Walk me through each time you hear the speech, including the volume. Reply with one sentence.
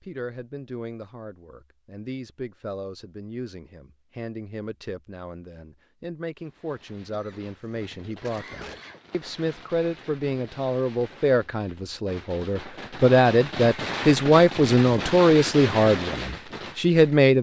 The speech can be heard from 0.0 to 17.3 s, getting louder.